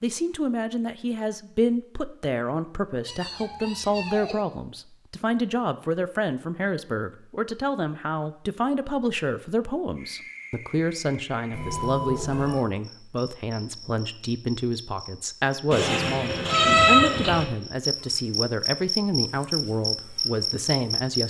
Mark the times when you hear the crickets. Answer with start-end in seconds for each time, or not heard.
9.9-21.2.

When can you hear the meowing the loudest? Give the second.
17 s.